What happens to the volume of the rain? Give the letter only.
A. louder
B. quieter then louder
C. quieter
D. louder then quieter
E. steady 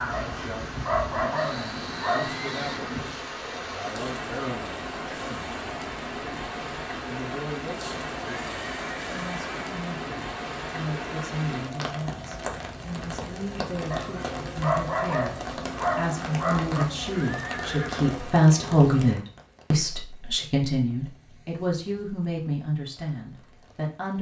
C.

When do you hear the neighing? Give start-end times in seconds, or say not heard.
1.4-2.9, 8.2-9.7, 17.1-18.1.